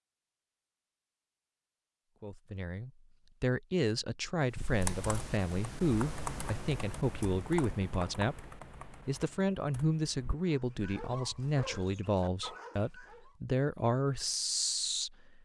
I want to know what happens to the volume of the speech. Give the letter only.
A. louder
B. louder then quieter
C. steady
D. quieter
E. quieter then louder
C.